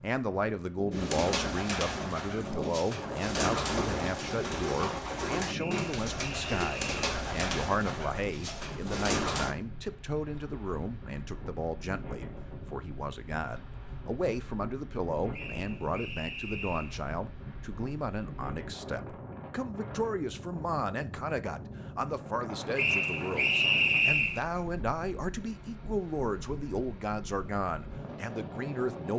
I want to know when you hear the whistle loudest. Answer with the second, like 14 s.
24 s.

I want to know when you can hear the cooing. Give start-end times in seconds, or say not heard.
0.9-9.6.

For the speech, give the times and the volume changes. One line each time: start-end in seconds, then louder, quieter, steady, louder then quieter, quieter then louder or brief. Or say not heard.
0.0-29.1 steady.